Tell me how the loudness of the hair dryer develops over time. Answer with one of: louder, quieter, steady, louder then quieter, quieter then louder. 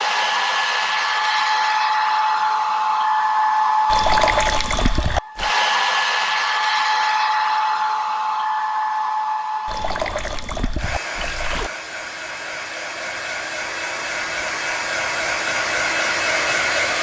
quieter then louder.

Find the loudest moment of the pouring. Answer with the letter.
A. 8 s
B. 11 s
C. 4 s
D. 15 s
C.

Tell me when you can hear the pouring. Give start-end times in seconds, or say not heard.
3.9-5.5, 9.7-11.7.